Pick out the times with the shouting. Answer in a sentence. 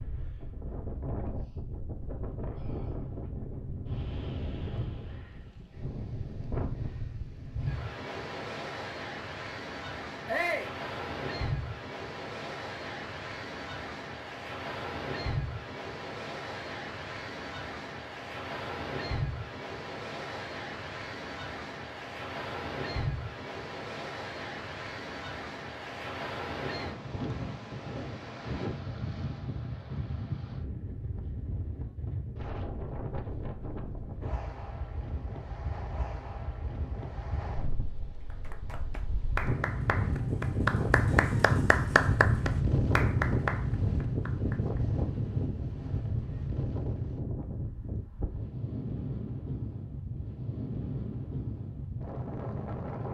The shouting can be heard from 10.2 to 10.8 s.